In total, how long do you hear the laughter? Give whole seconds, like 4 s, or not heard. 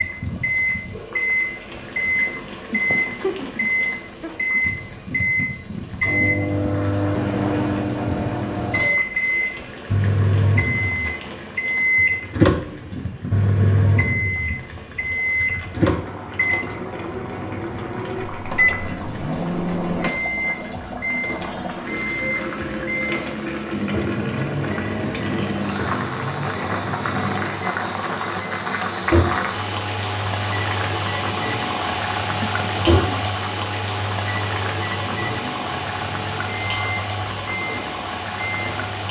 3 s.